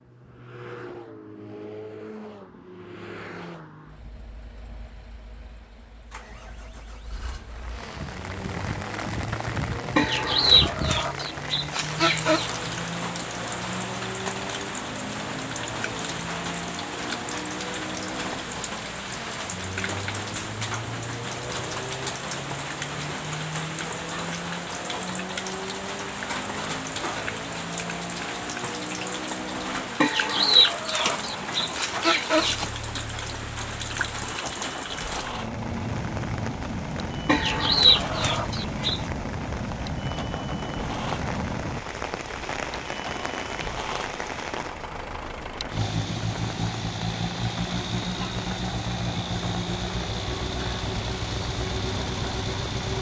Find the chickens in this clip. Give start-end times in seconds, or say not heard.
9.9-12.5, 30.0-32.6, 37.2-39.0.